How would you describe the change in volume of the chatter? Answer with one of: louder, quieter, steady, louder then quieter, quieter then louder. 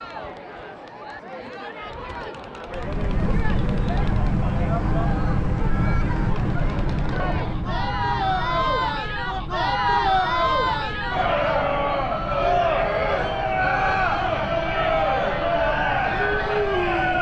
louder.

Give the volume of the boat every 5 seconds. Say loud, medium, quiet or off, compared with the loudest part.
loud, loud, medium, medium.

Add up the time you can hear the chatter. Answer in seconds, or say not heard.
17 s.